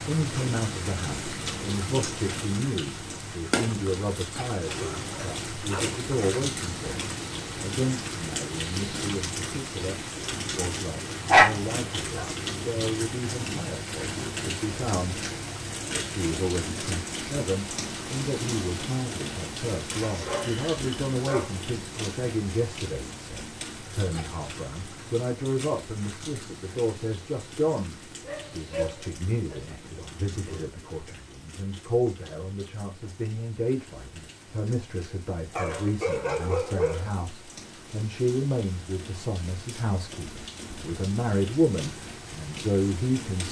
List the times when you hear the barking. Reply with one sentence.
You can hear the barking from 4.7 to 6.0 s, from 11.2 to 12.3 s, from 19.9 to 21.5 s, from 28.2 to 30.7 s and from 35.5 to 37.1 s.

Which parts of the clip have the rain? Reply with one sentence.
You can hear the rain from 0.0 to 43.4 s.